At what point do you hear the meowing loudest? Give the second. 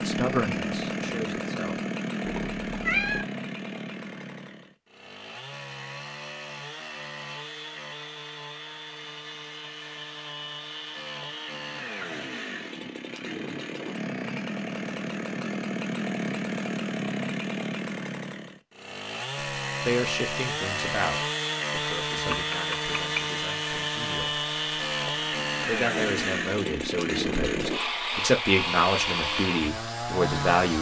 3 s.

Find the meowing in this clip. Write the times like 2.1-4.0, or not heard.
2.2-3.2, 22.1-23.2.